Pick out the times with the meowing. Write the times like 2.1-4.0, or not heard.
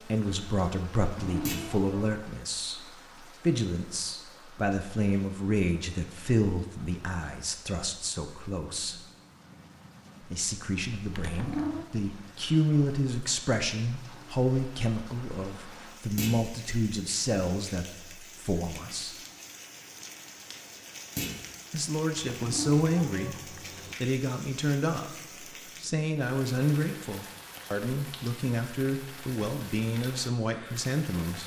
0.9-2.1, 11.1-11.8, 22.1-23.9.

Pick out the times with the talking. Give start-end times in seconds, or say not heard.
0.1-2.8, 3.4-9.0, 10.2-19.1, 21.7-31.4.